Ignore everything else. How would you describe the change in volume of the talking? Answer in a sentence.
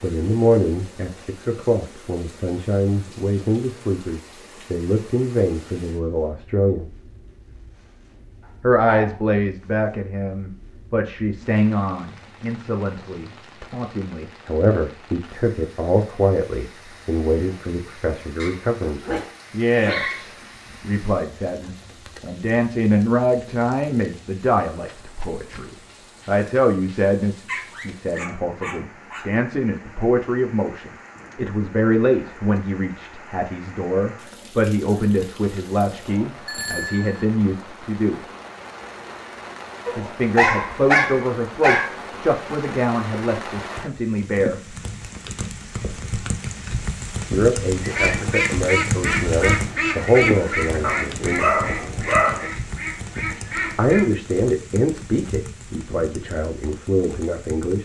The loudness of the talking stays about the same.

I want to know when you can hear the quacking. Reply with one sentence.
You can hear the quacking from 47.8 to 54.0 s.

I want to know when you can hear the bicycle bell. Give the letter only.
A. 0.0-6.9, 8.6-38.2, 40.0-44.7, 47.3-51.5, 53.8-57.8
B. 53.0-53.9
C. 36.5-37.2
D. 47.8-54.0
C.